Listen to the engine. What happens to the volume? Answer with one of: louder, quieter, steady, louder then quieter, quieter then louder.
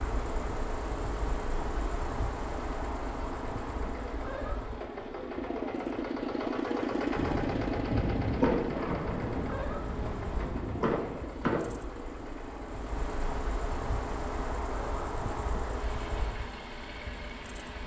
louder then quieter.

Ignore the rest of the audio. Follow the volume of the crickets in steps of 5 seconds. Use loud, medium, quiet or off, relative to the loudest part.
loud, medium, loud, loud.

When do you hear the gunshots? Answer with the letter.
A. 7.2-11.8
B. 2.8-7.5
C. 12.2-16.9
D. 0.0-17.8
A.